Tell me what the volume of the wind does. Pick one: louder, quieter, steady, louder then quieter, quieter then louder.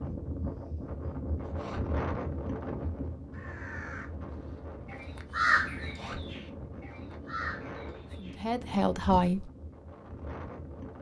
quieter.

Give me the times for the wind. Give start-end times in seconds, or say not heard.
0.0-10.9.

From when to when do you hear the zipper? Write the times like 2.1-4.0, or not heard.
1.4-1.9, 5.8-6.2.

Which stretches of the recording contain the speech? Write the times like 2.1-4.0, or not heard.
8.2-9.5.